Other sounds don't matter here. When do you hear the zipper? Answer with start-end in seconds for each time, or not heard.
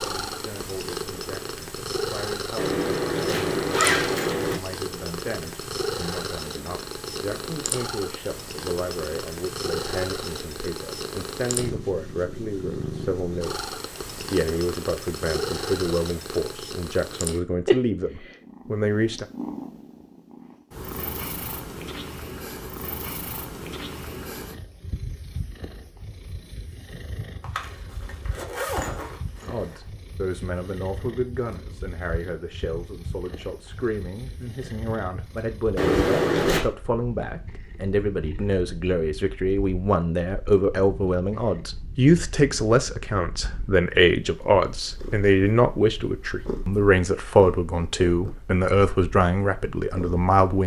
2.5-4.6, 27.4-29.8, 35.8-36.6.